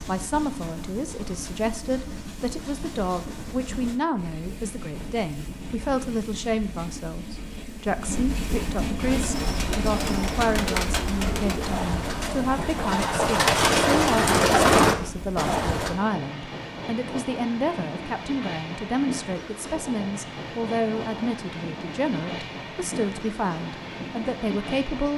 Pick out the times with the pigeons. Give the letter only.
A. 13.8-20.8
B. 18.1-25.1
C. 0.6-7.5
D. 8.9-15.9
D.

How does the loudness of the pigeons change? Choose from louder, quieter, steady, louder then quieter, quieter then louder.
louder.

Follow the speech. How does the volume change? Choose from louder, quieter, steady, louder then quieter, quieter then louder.
steady.